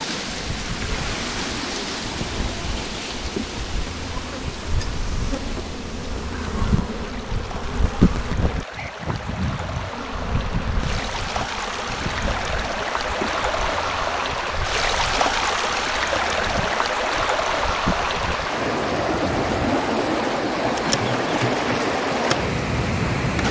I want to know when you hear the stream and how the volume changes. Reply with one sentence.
You can hear the stream from 0.0 to 23.4 s, getting quieter then louder.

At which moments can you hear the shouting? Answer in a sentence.
You can't hear the shouting here.